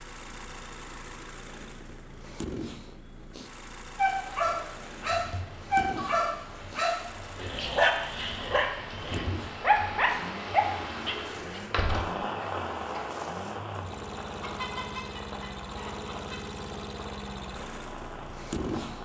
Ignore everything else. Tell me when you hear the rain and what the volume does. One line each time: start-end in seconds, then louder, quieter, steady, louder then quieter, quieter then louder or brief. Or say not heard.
4.2-19.0 louder then quieter.